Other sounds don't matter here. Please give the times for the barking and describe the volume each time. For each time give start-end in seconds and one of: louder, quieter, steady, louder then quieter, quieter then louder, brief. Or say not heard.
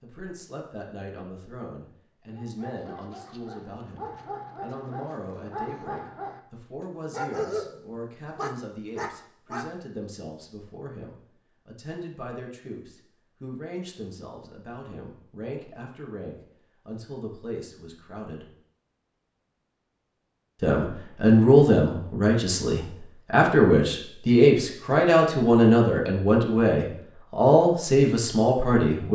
2.4-9.7 louder.